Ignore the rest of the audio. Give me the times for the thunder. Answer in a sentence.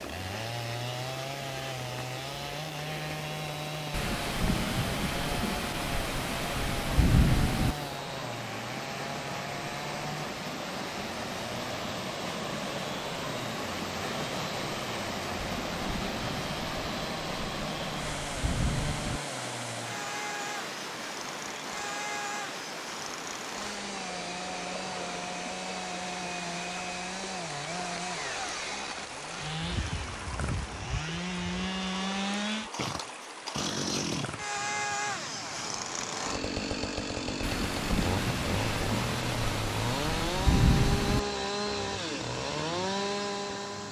You can hear the thunder from 3.9 to 7.8 s, from 15.4 to 19.2 s and from 37.4 to 41.2 s.